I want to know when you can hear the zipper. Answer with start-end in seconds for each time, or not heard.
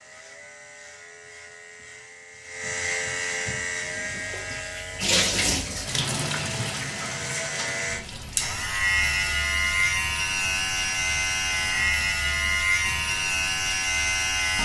not heard.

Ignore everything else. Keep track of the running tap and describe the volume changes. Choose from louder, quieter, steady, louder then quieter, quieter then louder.
quieter.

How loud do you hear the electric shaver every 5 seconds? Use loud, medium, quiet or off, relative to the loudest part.
medium, loud, loud.